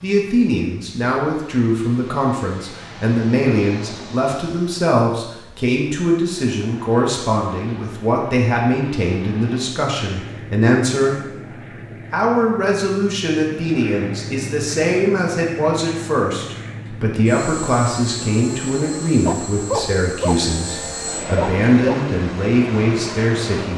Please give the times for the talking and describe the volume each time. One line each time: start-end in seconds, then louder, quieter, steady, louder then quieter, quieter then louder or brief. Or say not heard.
0.0-11.4 steady
12.1-23.7 steady.